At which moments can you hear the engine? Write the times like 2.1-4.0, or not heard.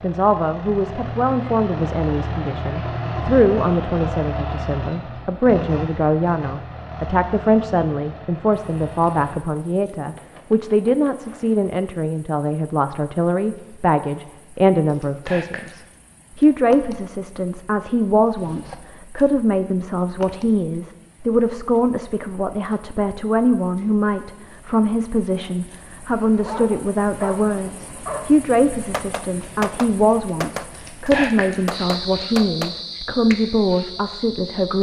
0.0-9.3.